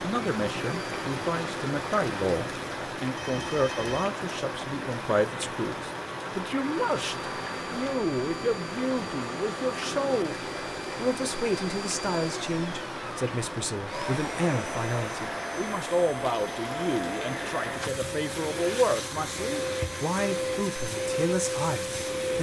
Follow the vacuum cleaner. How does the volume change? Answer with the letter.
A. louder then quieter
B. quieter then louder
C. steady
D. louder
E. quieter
D.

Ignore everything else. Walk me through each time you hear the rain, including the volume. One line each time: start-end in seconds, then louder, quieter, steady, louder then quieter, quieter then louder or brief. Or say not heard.
0.0-22.3 quieter.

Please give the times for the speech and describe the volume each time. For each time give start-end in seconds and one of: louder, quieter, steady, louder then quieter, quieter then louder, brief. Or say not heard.
0.0-10.3 steady
10.9-22.3 steady.